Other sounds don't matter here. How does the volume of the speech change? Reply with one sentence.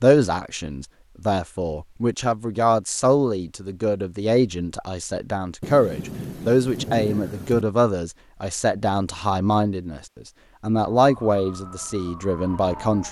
The loudness of the speech stays about the same.